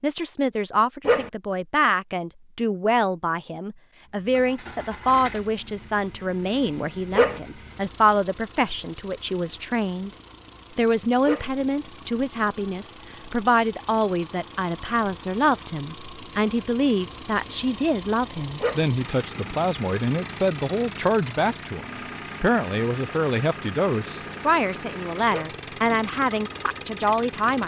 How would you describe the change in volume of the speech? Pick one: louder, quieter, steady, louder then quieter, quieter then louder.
steady.